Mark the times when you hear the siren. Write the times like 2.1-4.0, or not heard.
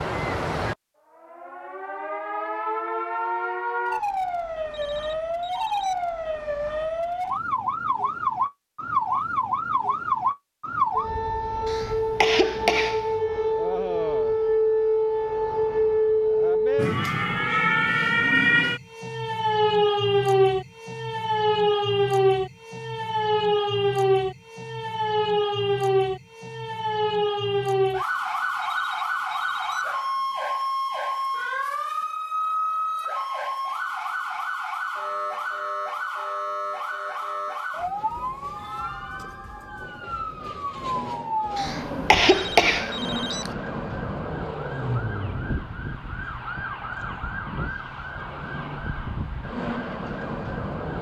0.0-50.9.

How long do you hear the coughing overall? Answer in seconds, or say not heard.
3 s.